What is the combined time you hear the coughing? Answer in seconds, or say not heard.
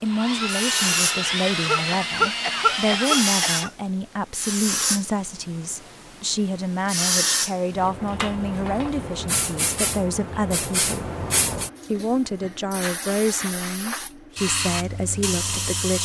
2 s.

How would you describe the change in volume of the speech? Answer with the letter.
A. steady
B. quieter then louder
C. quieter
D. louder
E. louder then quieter
A.